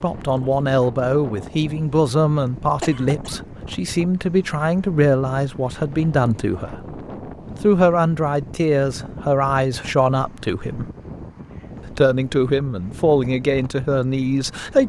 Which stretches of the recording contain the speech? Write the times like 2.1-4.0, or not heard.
0.0-6.8, 7.6-10.9, 11.8-14.8.